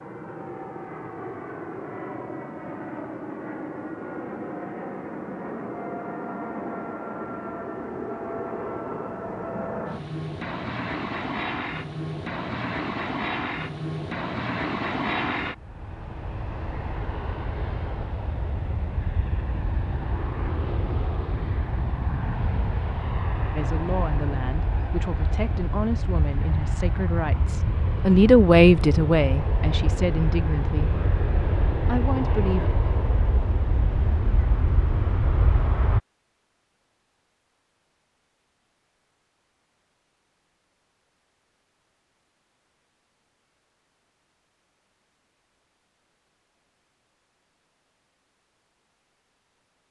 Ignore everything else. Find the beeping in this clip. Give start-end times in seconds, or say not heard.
not heard.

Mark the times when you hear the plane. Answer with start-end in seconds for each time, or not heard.
0.0-36.0.